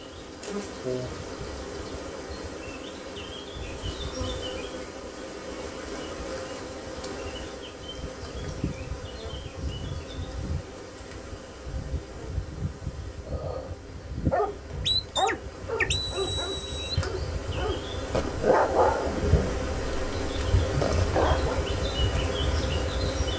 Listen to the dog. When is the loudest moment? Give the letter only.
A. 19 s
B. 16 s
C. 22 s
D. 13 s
A.